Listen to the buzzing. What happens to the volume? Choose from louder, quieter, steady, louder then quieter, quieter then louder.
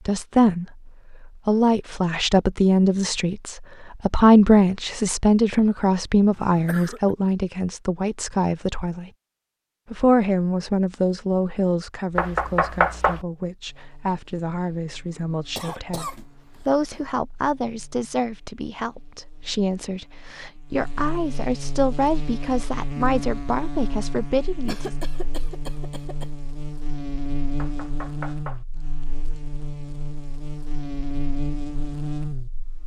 louder.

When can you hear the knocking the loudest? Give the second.
13 s.